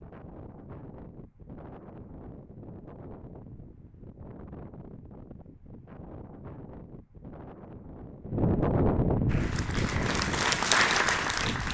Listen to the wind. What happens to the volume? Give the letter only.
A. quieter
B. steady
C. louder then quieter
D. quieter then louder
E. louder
E.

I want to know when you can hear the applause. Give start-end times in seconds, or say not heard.
9.2-11.6.